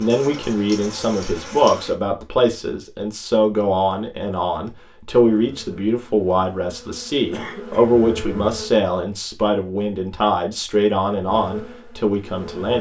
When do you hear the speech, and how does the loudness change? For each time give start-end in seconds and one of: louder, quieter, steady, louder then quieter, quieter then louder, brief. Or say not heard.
0.0-12.7 steady.